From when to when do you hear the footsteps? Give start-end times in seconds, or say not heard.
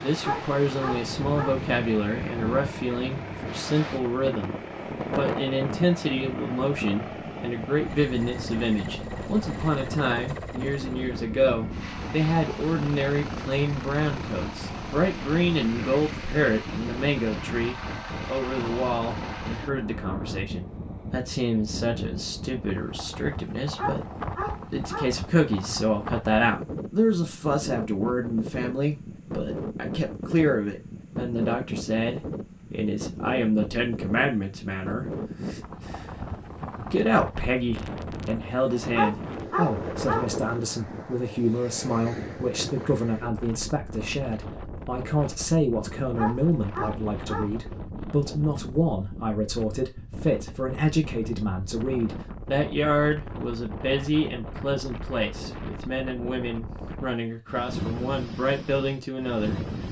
not heard.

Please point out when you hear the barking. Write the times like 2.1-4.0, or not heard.
0.2-1.6, 23.8-25.2, 38.9-40.4, 46.1-47.8.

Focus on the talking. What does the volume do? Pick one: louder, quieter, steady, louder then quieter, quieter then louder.
steady.